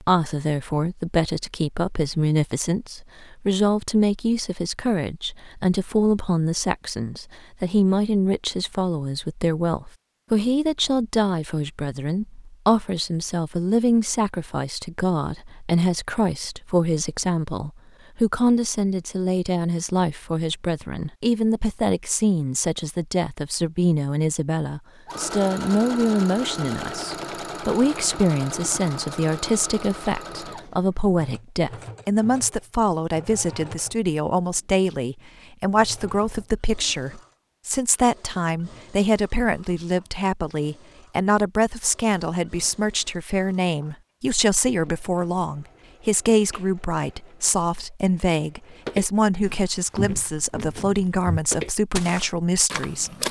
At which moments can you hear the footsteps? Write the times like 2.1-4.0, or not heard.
48.9-53.2.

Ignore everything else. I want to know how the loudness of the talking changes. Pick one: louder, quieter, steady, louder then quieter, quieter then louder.
steady.